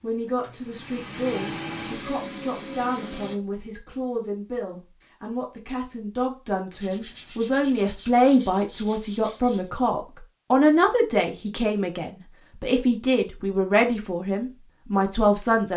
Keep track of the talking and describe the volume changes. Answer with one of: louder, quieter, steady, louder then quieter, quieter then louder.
louder.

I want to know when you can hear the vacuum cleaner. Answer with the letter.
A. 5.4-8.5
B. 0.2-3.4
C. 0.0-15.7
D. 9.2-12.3
B.